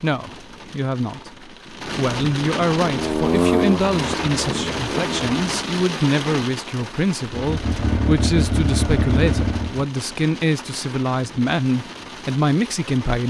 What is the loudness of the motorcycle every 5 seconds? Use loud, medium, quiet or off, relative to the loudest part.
loud, loud, off.